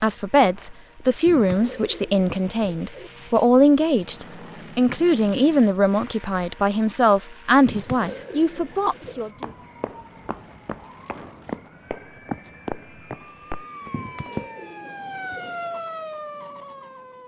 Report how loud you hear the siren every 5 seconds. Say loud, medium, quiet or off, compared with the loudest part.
off, quiet, medium, loud.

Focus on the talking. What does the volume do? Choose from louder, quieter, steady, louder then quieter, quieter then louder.
steady.